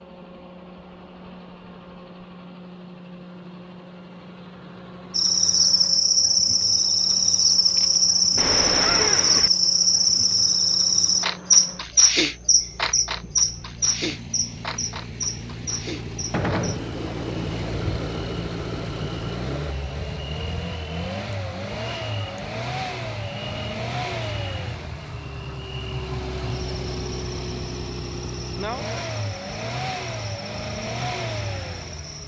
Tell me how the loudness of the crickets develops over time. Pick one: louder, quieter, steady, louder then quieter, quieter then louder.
quieter.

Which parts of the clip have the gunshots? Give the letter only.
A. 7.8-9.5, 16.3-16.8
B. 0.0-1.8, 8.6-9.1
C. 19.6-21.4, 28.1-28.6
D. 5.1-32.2
A.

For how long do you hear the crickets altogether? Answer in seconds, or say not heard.
27 s.